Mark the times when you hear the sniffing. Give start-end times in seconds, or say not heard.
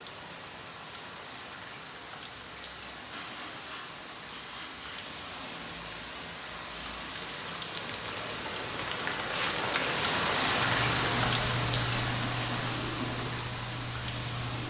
2.5-5.0.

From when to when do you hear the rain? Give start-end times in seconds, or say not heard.
0.0-14.6.